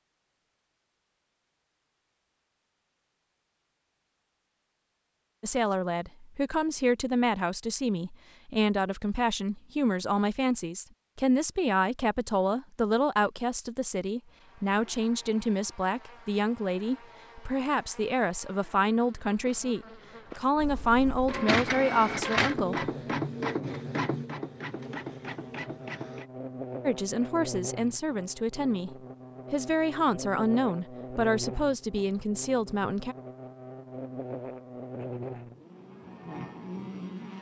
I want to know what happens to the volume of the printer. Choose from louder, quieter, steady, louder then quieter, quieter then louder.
quieter.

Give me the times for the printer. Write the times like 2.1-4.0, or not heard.
20.6-26.2.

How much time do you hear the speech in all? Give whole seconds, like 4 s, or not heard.
24 s.